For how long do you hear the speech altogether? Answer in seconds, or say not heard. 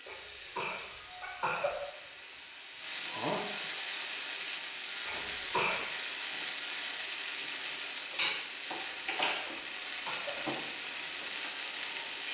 not heard.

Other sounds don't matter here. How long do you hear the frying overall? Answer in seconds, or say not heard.
12 s.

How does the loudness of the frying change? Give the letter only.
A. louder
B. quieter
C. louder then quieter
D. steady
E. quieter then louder
A.